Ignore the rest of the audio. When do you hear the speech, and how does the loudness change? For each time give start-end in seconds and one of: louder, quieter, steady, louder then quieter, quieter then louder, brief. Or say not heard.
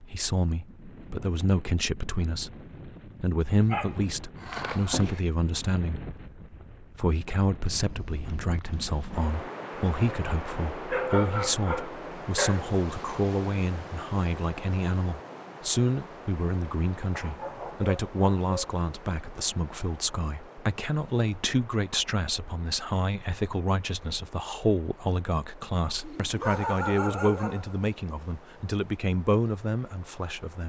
0.0-2.5 brief
3.2-6.1 brief
6.8-30.6 steady.